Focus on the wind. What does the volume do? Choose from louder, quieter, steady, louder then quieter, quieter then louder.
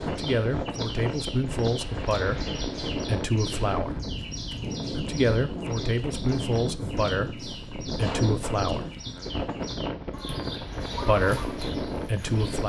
steady.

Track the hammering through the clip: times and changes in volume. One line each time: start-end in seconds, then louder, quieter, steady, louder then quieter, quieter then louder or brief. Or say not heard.
not heard.